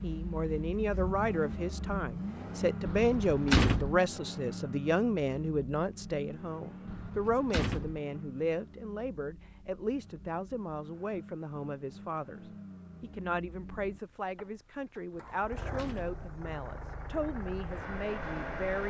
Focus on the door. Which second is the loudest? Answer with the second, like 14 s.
4 s.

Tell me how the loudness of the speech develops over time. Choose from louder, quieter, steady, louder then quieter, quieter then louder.
quieter.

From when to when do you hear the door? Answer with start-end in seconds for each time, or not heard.
2.9-4.0, 6.8-8.0, 15.2-16.2.